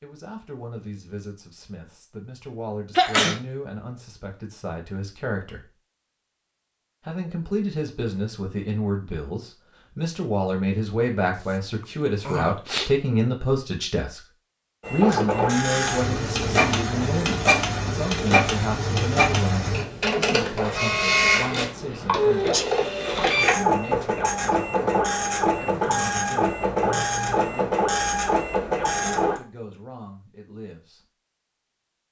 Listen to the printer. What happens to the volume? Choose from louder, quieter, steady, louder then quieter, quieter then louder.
steady.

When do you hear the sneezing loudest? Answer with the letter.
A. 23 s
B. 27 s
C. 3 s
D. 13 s
C.